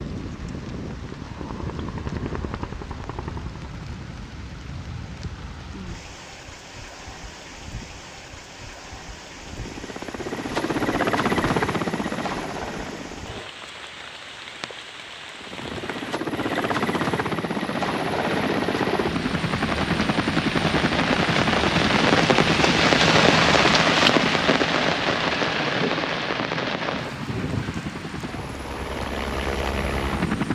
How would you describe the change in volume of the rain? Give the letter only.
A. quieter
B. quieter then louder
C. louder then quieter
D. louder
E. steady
D.